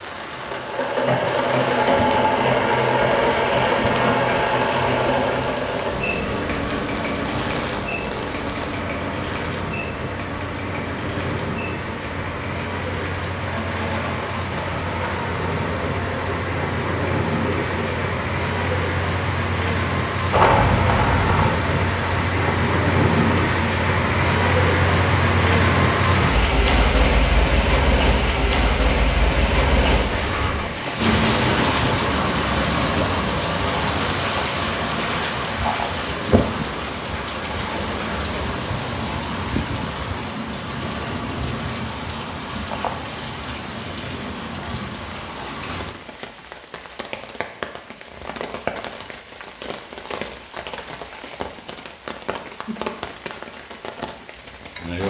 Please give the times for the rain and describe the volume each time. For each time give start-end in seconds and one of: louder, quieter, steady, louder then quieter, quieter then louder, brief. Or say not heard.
0.0-55.0 louder then quieter.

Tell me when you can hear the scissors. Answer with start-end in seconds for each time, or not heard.
20.3-21.6, 30.1-30.7.